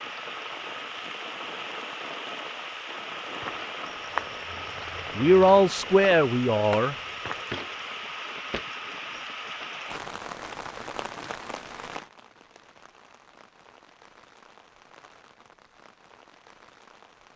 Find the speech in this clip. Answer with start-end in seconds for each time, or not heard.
5.2-7.0.